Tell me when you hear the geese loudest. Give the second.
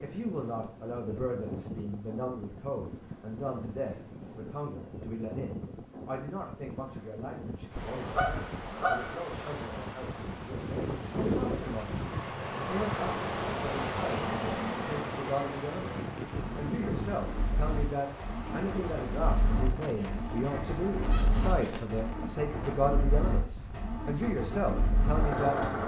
9 s.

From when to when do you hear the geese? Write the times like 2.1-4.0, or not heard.
7.8-9.2, 19.8-21.8.